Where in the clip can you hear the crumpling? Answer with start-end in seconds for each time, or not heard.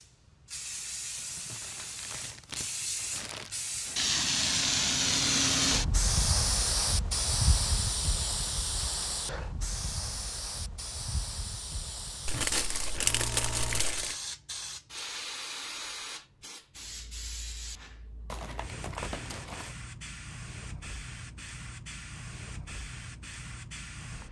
1.1-3.6, 12.2-14.2, 18.2-19.8.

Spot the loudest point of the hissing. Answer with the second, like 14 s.
5 s.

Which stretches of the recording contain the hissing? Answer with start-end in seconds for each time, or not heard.
0.0-24.2.